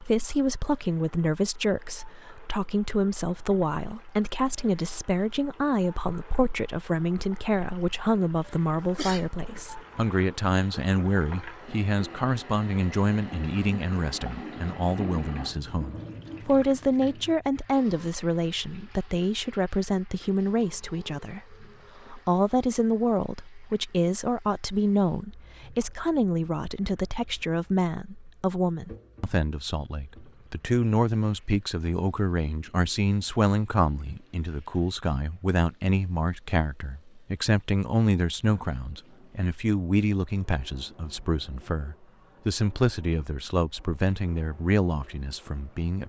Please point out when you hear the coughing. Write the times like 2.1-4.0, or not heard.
8.8-9.6.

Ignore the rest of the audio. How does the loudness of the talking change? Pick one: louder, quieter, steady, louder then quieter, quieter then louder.
steady.